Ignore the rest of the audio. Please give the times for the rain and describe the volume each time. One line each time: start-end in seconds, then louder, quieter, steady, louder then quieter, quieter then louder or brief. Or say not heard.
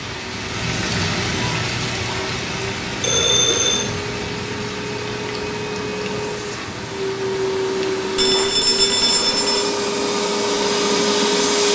0.0-11.4 quieter.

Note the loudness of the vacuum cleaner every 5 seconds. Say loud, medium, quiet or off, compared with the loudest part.
quiet, medium, loud.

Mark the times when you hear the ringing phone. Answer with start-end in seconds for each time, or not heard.
3.0-3.9, 8.2-9.7.